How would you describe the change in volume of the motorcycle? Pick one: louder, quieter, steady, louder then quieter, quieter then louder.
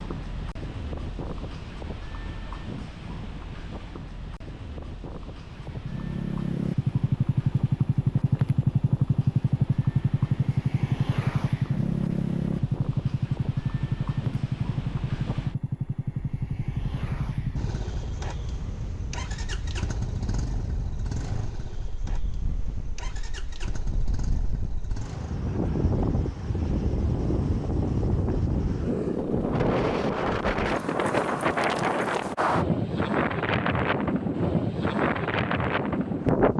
quieter.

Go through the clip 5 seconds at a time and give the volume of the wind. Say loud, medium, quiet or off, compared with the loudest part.
quiet, quiet, quiet, quiet, quiet, loud, loud, loud.